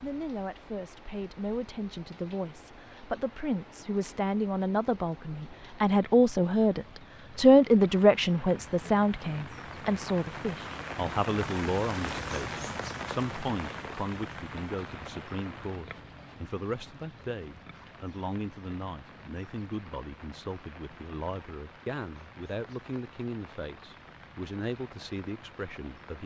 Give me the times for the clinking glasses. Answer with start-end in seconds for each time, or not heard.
not heard.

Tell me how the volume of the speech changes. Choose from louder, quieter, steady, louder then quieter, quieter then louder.
louder then quieter.